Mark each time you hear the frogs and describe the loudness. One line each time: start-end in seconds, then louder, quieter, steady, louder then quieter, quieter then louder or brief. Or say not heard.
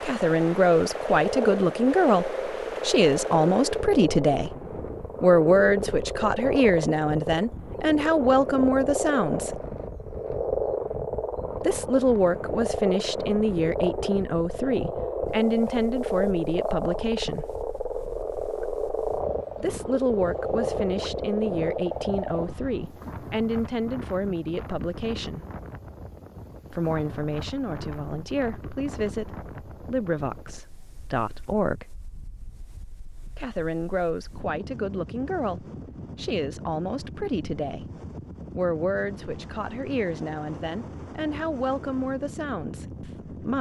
0.0-22.5 steady.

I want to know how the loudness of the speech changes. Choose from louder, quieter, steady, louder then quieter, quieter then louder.
quieter.